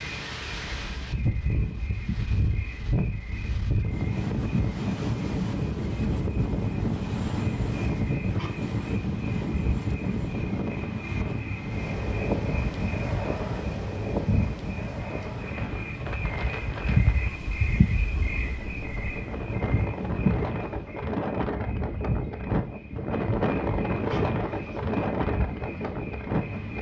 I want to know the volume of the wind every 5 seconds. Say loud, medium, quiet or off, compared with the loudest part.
loud, loud, loud, medium, loud, loud.